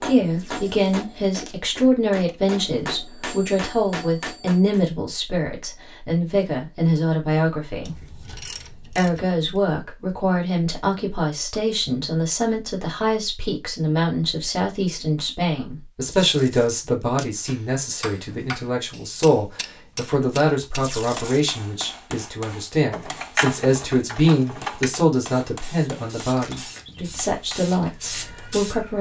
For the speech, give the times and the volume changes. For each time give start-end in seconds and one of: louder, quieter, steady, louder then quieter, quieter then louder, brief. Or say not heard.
0.0-28.9 steady.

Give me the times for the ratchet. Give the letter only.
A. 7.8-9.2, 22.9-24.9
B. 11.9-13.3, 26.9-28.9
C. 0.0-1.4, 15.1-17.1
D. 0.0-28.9
A.